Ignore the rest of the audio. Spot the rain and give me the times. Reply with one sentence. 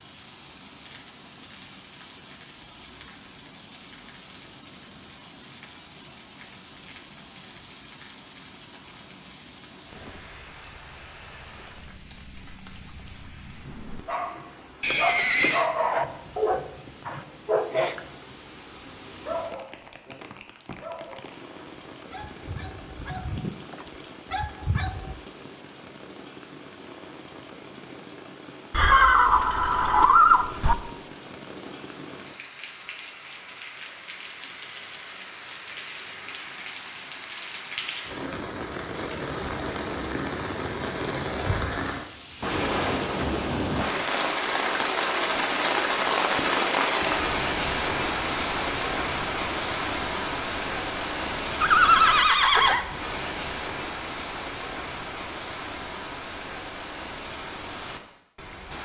The rain can be heard from 0.0 to 58.7 s.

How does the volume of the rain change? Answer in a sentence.
The volume of the rain goes up.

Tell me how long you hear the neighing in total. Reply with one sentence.
You can hear the neighing for 4 seconds altogether.